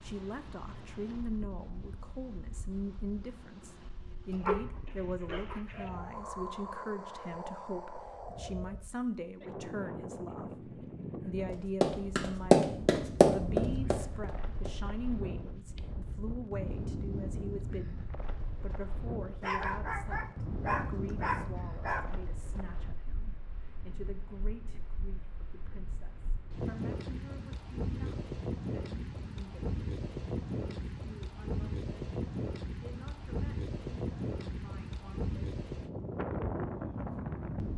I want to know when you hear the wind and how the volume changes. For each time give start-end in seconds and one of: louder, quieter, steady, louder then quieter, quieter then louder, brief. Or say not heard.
0.0-37.7 louder.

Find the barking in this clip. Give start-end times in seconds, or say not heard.
4.3-5.9, 19.4-22.2.